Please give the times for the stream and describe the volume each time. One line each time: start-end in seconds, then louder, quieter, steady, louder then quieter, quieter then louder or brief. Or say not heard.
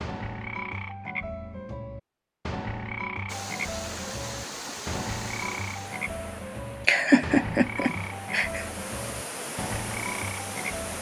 3.2-10.9 quieter then louder.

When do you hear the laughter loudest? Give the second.
7 s.